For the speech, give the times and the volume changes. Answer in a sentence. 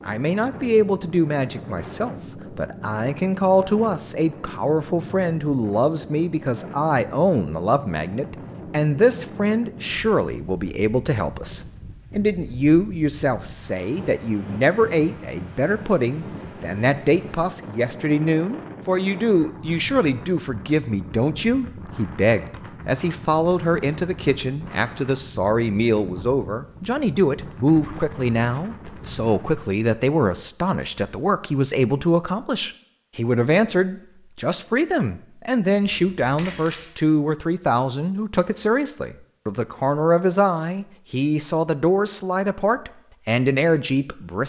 The speech can be heard from 0.1 to 44.4 s, at a steady volume.